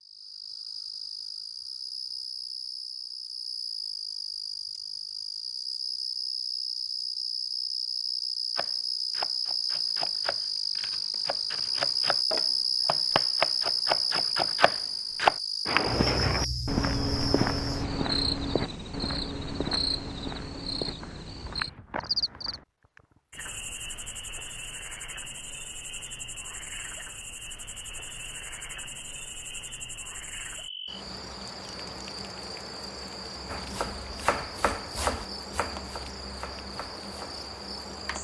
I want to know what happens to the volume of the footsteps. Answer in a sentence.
The loudness of the footsteps goes down.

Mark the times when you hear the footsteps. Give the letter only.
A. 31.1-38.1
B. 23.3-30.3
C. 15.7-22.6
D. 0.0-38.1
C.